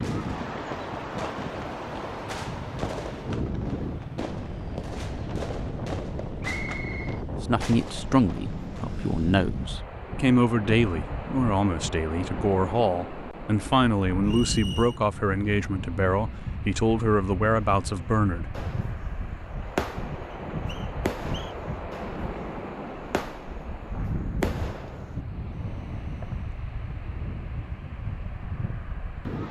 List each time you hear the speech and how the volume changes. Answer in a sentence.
The speech can be heard from 7.4 to 18.6 s, at a steady volume.